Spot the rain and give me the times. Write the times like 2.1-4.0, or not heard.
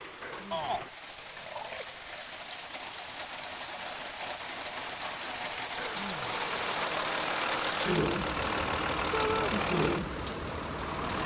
0.0-11.2.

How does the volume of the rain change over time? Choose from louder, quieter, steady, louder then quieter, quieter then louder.
louder.